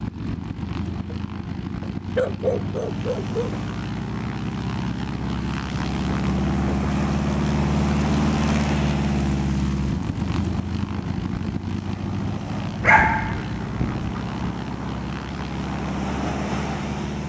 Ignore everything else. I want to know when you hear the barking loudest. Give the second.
13 s.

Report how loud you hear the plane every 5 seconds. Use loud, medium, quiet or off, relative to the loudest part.
medium, loud, medium, medium.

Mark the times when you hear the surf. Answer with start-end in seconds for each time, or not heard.
2.8-17.2.